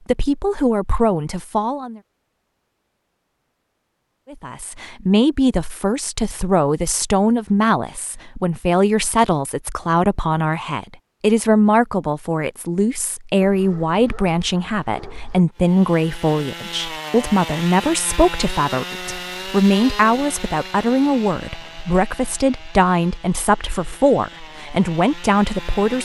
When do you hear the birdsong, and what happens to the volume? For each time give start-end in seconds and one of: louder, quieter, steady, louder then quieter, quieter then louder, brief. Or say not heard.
not heard.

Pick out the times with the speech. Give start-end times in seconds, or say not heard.
0.1-2.0, 4.3-25.9.